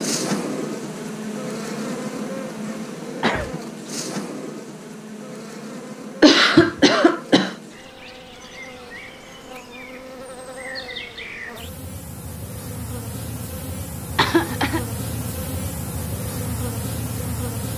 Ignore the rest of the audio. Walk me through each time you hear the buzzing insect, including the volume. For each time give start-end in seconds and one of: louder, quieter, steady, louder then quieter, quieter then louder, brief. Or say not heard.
0.0-17.7 quieter then louder.